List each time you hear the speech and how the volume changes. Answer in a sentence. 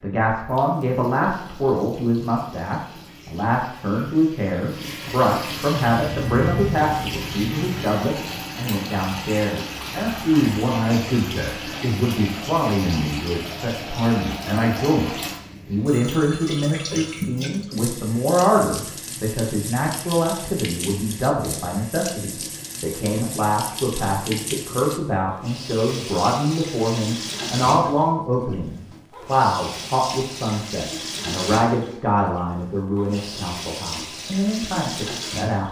The speech can be heard from 0.0 to 35.6 s, at a steady volume.